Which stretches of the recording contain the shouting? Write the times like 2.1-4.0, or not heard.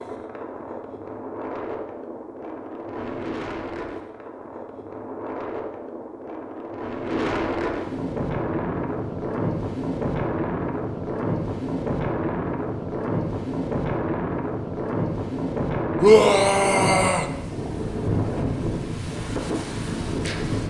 16.0-17.3.